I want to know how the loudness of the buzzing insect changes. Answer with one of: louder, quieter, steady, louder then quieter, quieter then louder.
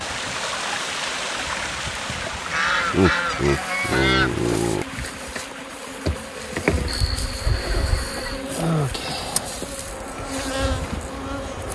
louder.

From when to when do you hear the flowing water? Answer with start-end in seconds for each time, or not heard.
0.0-11.7.